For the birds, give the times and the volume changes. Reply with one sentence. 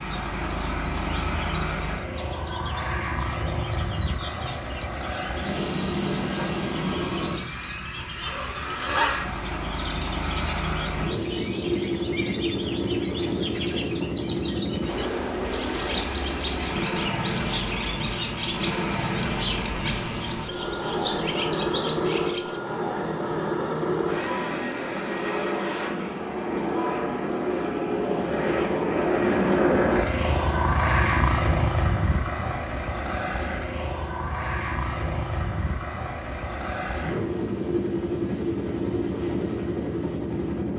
You can hear the birds from 0.0 to 22.6 s, getting louder.